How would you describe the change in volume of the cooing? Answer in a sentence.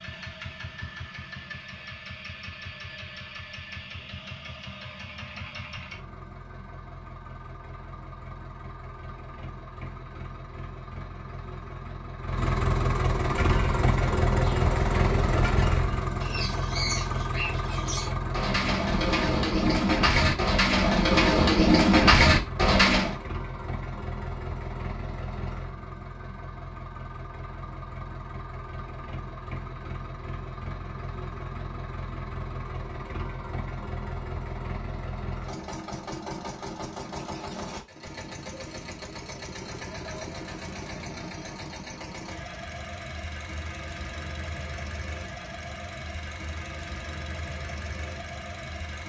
The volume of the cooing goes up.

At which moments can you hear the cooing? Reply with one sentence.
You can hear the cooing from 13.2 to 23.1 s.